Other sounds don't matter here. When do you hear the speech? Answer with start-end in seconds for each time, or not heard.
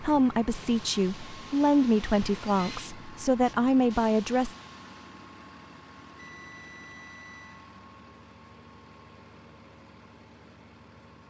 0.0-4.5.